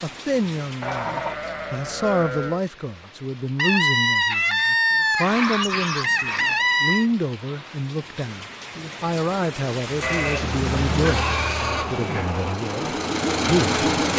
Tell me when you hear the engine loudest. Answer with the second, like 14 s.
14 s.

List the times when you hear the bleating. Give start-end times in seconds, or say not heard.
0.8-2.6, 5.2-6.7, 10.0-12.3.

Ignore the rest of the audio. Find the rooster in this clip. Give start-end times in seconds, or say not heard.
3.5-7.1.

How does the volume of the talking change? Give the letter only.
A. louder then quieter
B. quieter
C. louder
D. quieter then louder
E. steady
E.